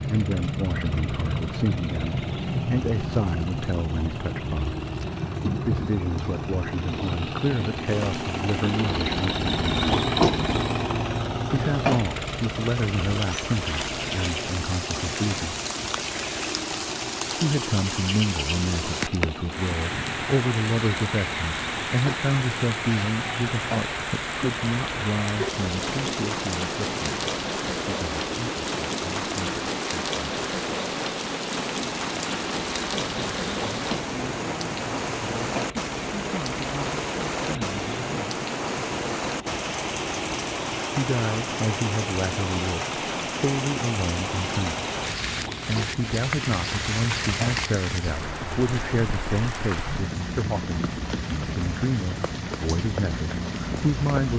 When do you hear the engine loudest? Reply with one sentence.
The loudest moment of the engine is at 10 seconds.